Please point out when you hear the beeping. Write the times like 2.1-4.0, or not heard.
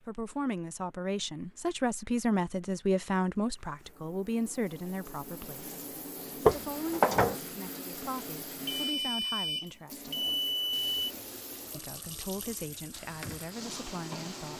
8.7-10.8.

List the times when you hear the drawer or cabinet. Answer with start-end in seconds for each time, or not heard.
6.5-7.4.